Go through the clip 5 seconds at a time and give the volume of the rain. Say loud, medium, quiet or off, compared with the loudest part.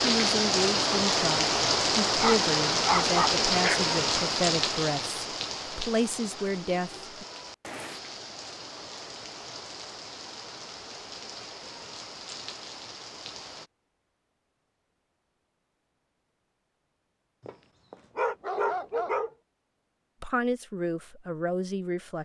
loud, quiet, quiet, off, off.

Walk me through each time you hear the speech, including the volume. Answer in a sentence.
You can hear the speech from 0.0 to 7.2 s, at a steady volume; and briefly from 20.2 to 22.2 s.